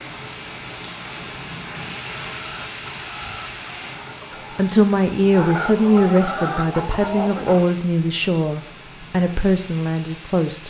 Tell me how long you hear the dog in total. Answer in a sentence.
The dog can't be heard in this clip.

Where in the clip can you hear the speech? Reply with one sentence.
You can hear the speech from 4.5 to 10.6 s.